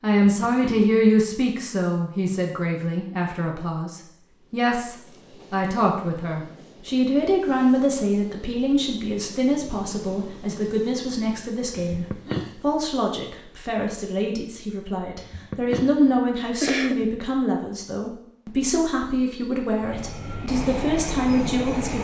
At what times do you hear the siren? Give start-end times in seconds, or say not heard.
not heard.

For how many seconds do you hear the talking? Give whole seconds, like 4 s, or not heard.
22 s.